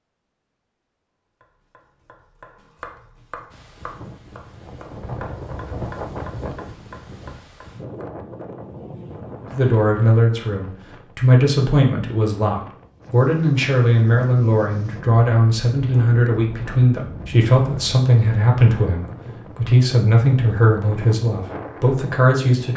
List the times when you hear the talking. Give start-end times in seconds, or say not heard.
9.5-22.7.